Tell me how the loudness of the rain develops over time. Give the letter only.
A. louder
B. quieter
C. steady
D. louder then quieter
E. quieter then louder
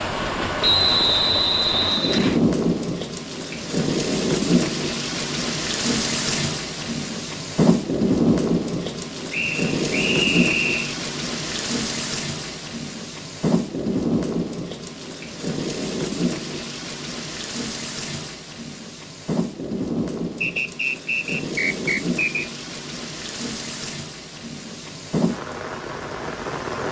B.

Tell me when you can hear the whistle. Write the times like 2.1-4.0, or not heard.
0.6-2.4, 9.3-10.9, 20.4-22.4.